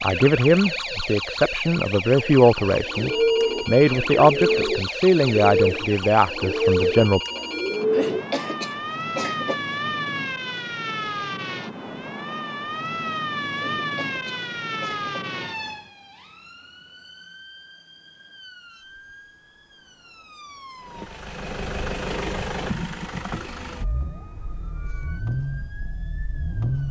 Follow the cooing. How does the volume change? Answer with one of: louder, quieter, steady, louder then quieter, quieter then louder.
quieter.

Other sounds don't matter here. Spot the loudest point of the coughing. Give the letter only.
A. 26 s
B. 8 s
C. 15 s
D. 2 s
B.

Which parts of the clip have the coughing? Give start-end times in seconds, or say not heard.
7.9-9.6, 13.6-15.3.